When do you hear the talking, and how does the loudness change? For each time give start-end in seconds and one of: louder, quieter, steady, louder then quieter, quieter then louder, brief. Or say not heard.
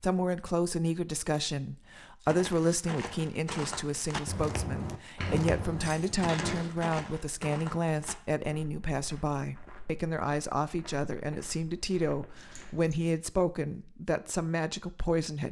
0.0-15.4 steady.